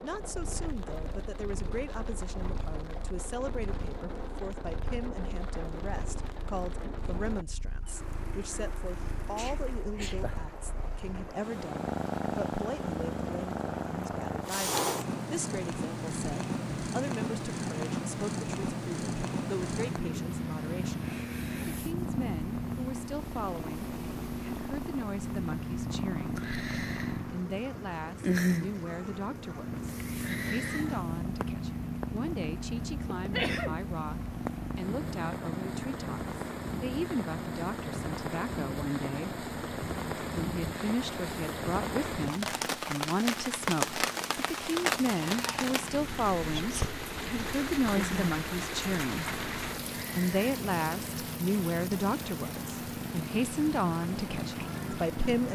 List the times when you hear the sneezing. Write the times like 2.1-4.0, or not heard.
9.3-10.3, 33.3-33.8, 46.5-47.0.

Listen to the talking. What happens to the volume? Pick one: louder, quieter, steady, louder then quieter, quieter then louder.
louder.